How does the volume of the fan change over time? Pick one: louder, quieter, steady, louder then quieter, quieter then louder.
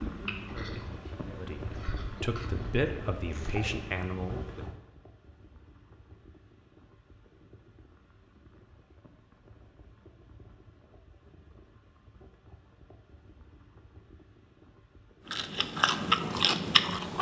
quieter.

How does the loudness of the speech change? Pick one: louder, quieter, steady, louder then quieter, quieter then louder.
louder.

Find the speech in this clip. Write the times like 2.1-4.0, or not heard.
0.1-4.7.